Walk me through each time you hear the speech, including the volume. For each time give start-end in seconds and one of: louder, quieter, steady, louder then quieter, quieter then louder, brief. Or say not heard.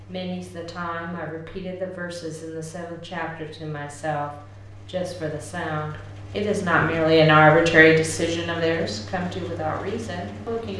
0.0-10.7 louder then quieter.